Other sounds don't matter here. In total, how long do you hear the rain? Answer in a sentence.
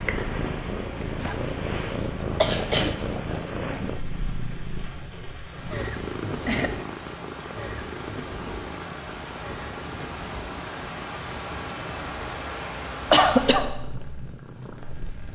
You can hear the rain for 15 seconds altogether.